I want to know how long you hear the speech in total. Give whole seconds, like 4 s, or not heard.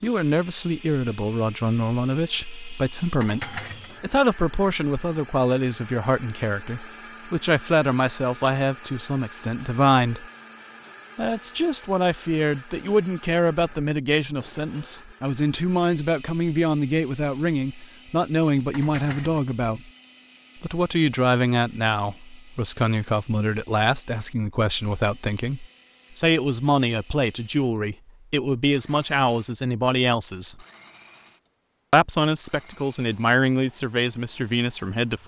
32 s.